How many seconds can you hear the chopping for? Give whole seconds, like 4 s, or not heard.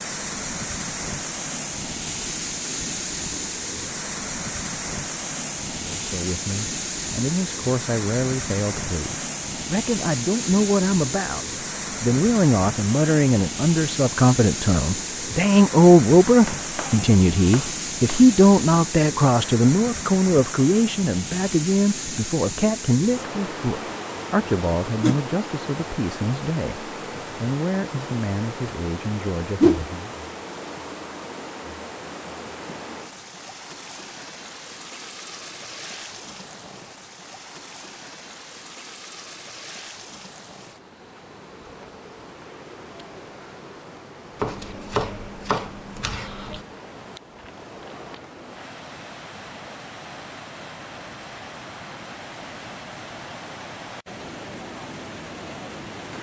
4 s.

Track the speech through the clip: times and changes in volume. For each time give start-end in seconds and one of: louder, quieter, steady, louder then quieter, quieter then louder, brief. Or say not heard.
5.9-30.1 louder then quieter.